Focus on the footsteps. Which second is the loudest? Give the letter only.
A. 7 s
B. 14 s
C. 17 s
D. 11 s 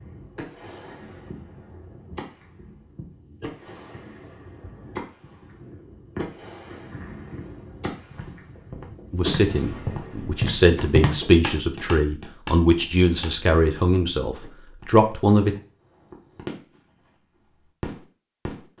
D.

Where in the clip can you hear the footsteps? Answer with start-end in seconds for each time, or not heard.
8.1-13.3.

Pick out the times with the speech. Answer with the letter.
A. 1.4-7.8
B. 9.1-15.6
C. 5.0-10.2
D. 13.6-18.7
B.